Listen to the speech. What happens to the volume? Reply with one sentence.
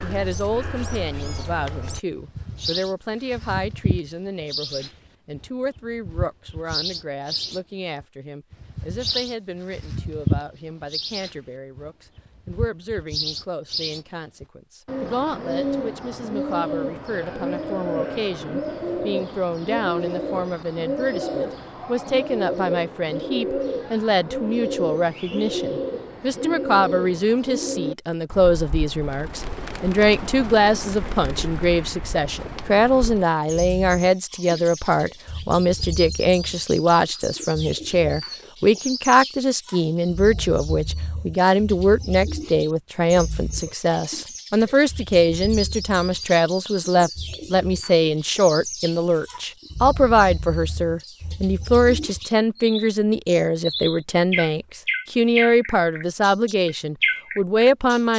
The volume of the speech goes up.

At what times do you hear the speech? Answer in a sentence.
The speech can be heard from 0.0 to 58.1 s.